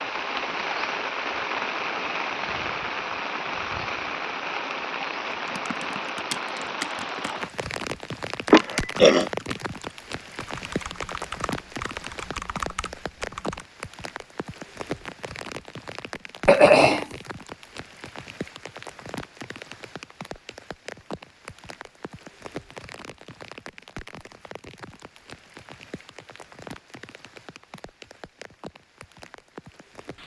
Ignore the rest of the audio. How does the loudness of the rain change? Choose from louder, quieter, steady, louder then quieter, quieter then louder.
quieter.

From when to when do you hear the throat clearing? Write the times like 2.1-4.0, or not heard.
8.5-9.3, 16.4-17.1.